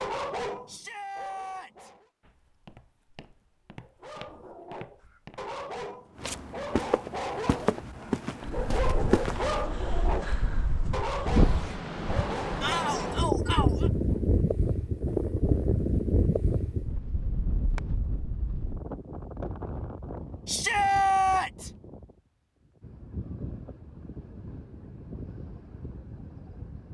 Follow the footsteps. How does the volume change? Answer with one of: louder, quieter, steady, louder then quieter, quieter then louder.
louder.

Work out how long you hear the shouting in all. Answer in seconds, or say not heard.
4 s.